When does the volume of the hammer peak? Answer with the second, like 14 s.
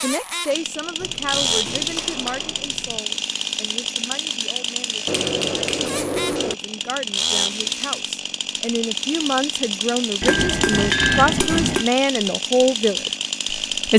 11 s.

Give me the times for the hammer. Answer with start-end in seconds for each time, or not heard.
0.9-3.0, 5.0-6.5, 10.2-11.9.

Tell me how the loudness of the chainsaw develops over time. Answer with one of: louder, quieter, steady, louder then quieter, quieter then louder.
steady.